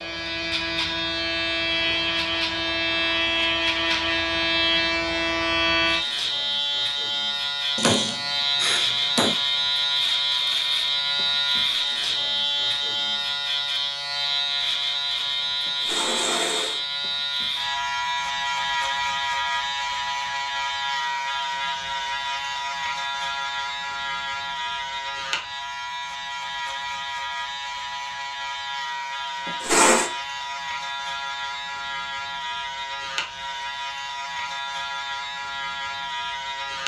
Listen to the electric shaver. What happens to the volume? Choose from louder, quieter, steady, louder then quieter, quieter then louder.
quieter.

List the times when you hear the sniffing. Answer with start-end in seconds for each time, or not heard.
7.8-9.3.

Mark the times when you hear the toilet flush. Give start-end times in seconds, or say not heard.
15.7-16.8, 29.4-30.1.